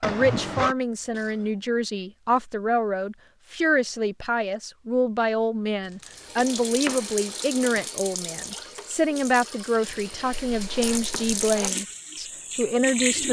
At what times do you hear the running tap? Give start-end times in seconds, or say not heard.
6.1-13.2.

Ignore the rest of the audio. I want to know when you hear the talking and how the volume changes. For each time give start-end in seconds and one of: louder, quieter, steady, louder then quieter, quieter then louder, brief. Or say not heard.
0.0-13.2 steady.